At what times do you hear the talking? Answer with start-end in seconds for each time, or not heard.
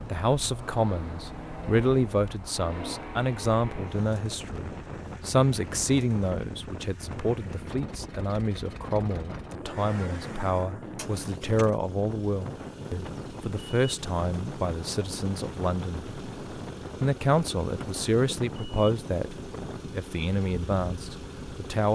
0.1-16.1, 17.0-21.8.